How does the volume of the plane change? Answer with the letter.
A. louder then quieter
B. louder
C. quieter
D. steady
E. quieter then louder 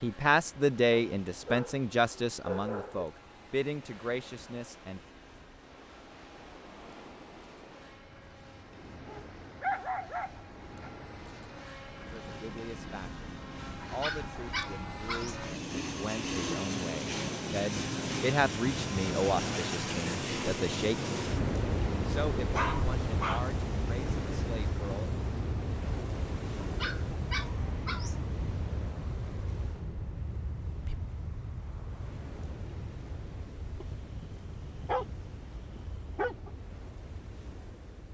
A.